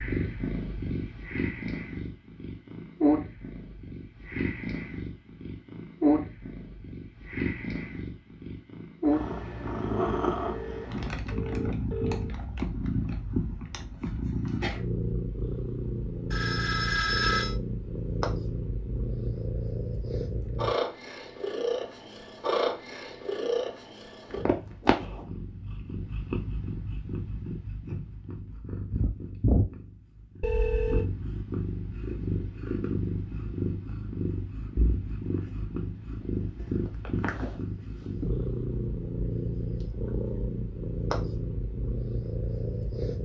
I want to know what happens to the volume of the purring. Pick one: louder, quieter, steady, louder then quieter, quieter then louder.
steady.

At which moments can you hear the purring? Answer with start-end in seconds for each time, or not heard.
0.0-43.1.